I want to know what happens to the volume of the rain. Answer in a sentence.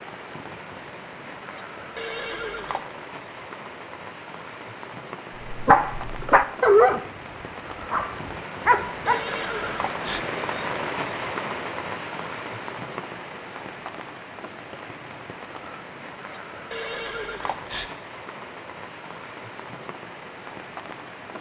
The volume of the rain goes up, then down.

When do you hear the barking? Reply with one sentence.
You can hear the barking from 5.4 to 7.0 s and from 7.9 to 9.2 s.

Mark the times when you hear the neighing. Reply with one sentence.
The neighing can be heard from 1.9 to 2.8 s, from 9.1 to 10.2 s and from 16.7 to 17.9 s.